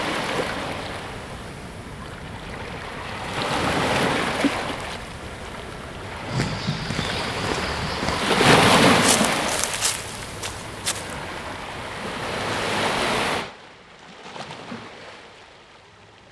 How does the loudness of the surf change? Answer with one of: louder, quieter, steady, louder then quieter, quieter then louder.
louder then quieter.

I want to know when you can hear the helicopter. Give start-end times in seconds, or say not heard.
not heard.